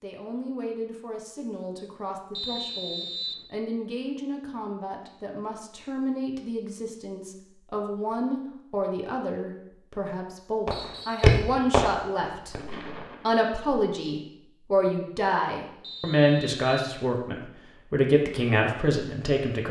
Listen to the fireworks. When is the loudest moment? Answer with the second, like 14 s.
11 s.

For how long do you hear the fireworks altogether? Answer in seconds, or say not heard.
3 s.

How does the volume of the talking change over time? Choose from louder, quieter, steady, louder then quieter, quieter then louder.
louder.